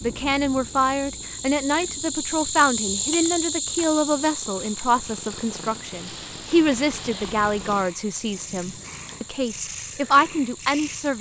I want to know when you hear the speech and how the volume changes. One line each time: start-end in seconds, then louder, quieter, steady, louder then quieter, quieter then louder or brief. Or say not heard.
0.0-11.1 steady.